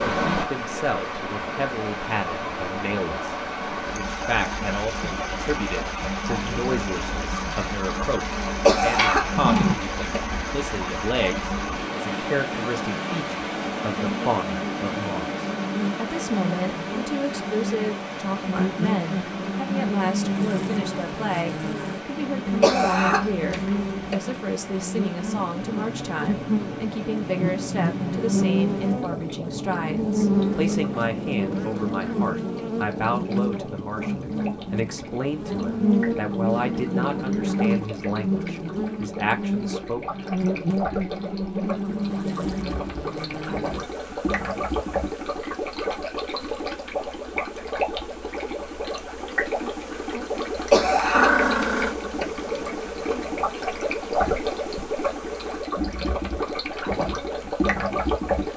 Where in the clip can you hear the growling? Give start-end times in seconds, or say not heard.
8.9-9.8, 51.1-52.0.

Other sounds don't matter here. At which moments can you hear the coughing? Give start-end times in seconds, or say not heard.
8.7-10.2, 22.4-24.1, 50.5-52.2.